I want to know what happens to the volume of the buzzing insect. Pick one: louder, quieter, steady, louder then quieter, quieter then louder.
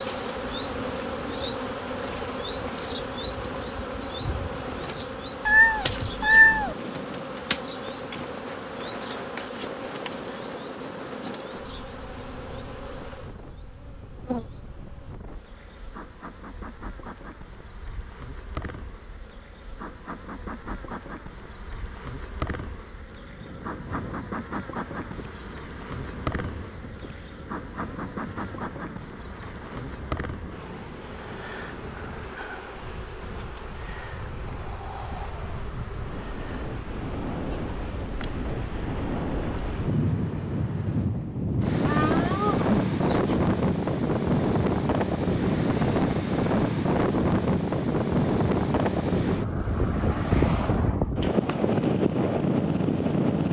quieter.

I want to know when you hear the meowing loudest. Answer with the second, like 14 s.
6 s.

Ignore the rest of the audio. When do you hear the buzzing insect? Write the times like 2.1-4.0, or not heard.
0.0-41.1.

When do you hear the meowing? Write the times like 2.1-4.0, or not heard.
5.5-6.8, 41.9-43.4.